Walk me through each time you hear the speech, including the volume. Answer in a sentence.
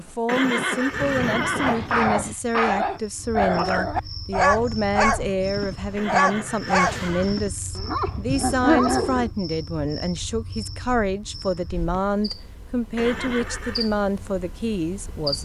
You can hear the speech from 0.0 to 15.4 s, at a steady volume.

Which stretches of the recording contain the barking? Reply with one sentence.
The barking can be heard from 1.6 to 9.3 s.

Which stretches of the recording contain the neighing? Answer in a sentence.
You can hear the neighing from 0.2 to 2.0 s, from 6.0 to 7.3 s and from 12.9 to 13.9 s.